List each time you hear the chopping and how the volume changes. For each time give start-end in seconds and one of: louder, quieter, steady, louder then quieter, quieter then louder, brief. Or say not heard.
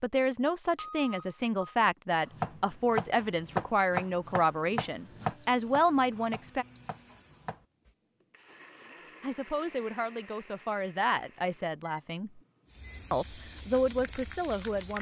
2.3-7.9 quieter.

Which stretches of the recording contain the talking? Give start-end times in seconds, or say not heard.
0.0-6.7, 9.2-12.4, 13.1-14.9.